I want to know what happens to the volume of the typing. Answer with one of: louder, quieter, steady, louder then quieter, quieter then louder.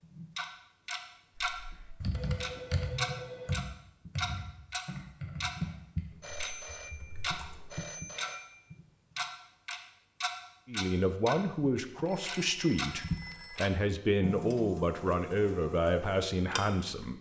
quieter.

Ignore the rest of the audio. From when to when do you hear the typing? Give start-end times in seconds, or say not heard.
1.4-7.8.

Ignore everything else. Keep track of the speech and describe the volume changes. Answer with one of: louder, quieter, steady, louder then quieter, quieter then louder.
steady.